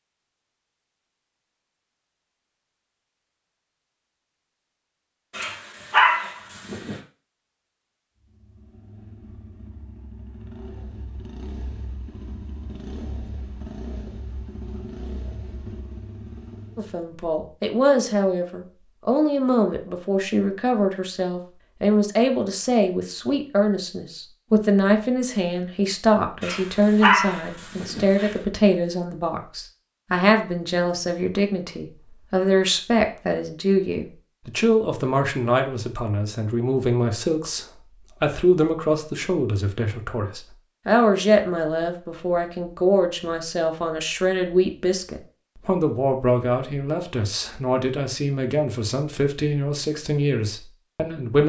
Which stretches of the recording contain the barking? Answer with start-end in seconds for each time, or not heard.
5.3-7.0, 26.4-28.3.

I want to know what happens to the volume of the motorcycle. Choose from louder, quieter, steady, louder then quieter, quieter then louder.
louder.